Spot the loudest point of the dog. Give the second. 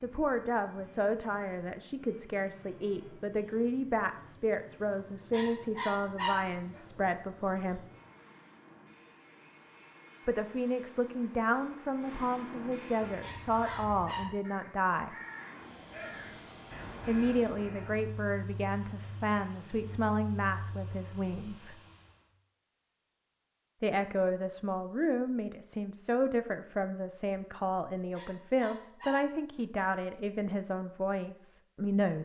6 s.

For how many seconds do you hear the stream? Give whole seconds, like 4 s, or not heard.
not heard.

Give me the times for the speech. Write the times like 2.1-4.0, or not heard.
0.0-7.8, 10.2-15.2, 17.1-21.8, 23.8-32.2.